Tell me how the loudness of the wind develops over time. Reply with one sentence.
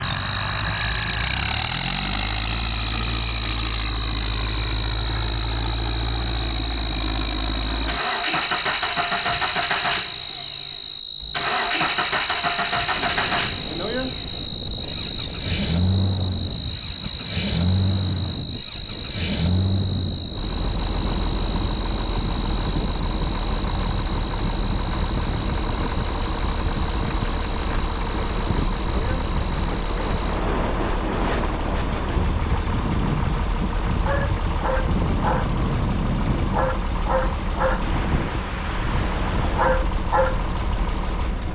The loudness of the wind goes up.